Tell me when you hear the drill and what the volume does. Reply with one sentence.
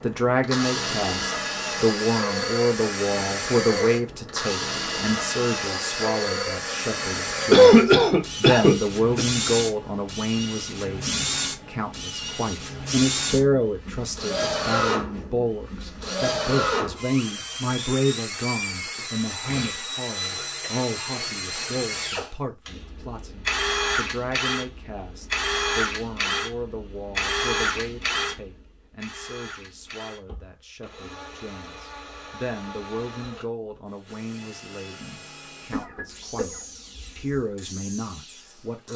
You can hear the drill from 0.0 to 38.9 s, getting quieter.